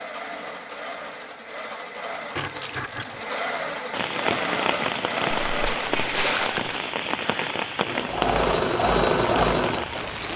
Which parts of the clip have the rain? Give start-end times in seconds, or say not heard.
3.9-10.3.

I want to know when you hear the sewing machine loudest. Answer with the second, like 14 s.
9 s.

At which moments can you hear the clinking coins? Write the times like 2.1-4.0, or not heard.
2.4-3.2, 5.5-6.8.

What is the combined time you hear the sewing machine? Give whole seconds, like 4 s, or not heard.
10 s.